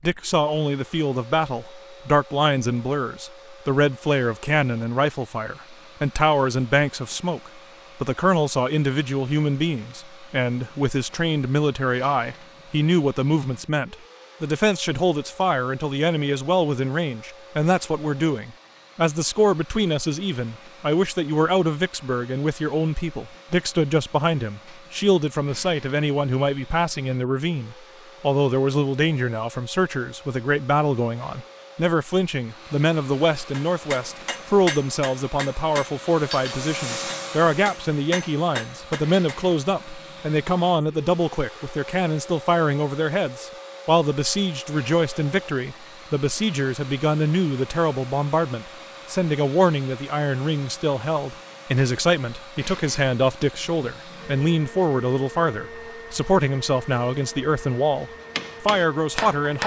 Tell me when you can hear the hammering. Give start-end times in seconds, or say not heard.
33.5-39.4, 58.4-59.6.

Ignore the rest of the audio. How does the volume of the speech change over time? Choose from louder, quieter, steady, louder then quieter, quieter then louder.
steady.